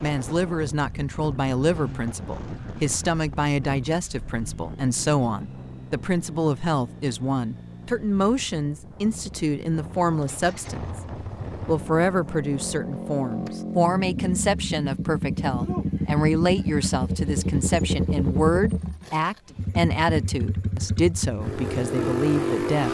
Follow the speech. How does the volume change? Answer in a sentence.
The loudness of the speech stays about the same.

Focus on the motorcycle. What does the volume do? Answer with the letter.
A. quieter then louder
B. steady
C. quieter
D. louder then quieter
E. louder
E.